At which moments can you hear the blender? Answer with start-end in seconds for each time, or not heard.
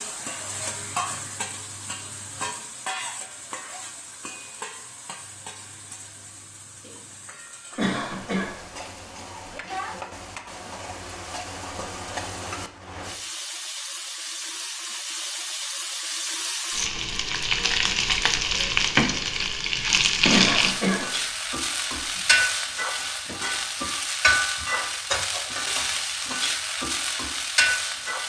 not heard.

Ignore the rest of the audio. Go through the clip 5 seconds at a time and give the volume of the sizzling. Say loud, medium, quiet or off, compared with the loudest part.
medium, quiet, medium, loud, loud, loud.